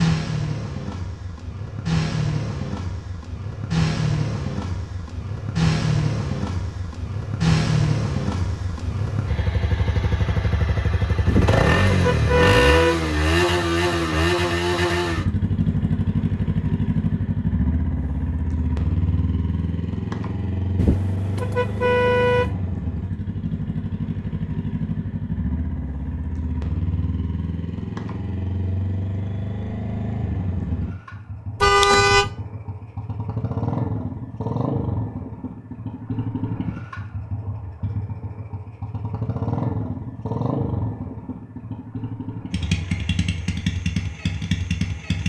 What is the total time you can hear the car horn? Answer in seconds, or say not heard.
4 s.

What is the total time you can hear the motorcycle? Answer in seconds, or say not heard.
45 s.